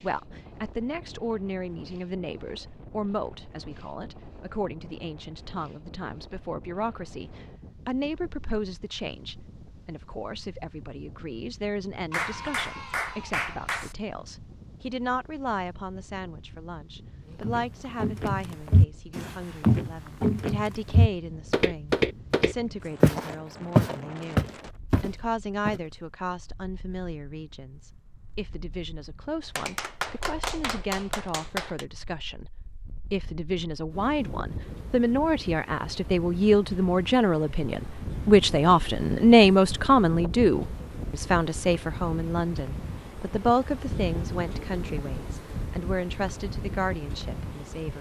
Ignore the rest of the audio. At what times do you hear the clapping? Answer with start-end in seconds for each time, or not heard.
12.1-13.9, 29.4-31.9.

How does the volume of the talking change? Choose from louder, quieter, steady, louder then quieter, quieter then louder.
louder.